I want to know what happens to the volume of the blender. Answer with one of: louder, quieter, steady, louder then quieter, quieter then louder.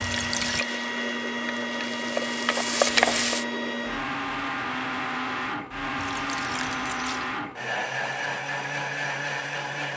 steady.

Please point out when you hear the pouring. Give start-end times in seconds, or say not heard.
0.0-0.7, 6.0-7.3.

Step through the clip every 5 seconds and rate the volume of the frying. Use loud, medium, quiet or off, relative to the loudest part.
loud, off.